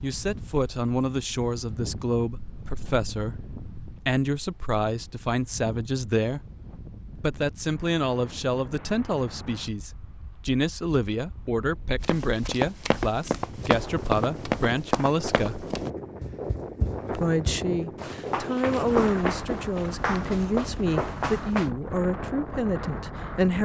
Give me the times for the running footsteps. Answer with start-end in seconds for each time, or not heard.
12.0-21.7.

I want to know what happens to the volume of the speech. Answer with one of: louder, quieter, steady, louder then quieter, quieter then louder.
steady.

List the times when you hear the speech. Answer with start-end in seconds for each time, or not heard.
0.0-6.4, 7.2-15.7, 17.1-23.5.